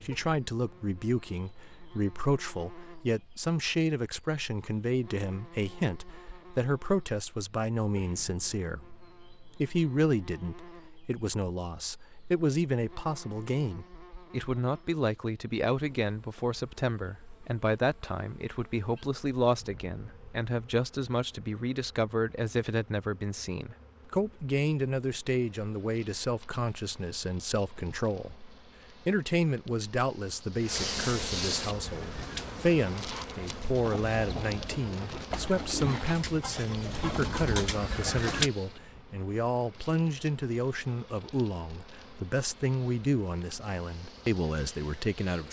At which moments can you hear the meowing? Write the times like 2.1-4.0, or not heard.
not heard.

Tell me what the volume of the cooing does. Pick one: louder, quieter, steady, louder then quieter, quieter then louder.
louder.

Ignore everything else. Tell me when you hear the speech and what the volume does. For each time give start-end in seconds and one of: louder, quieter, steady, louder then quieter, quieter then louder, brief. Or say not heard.
0.0-45.4 steady.